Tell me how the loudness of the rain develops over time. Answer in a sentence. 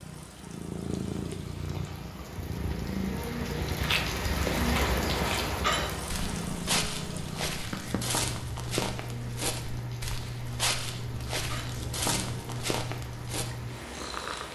The loudness of the rain goes up, then down.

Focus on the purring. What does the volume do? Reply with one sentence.
The volume of the purring stays about the same.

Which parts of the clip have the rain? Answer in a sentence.
The rain can be heard from 0.0 to 14.5 s.